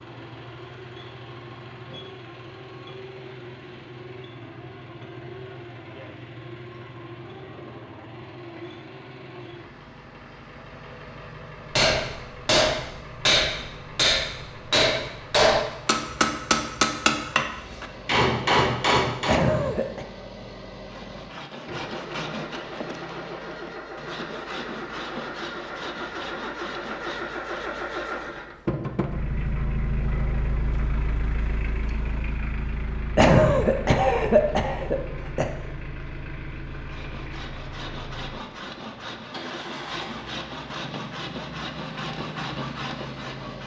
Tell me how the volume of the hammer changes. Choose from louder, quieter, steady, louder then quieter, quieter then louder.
steady.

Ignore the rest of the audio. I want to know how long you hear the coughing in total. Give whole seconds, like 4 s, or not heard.
3 s.